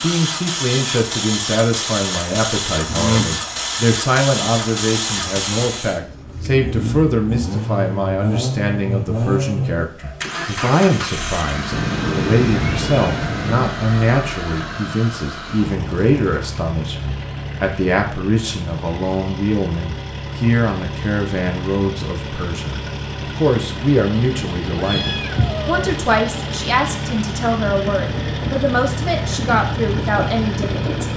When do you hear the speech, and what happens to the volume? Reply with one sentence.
The speech can be heard from 0.0 to 31.1 s, at a steady volume.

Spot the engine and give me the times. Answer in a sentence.
You can hear the engine from 0.0 to 31.1 s.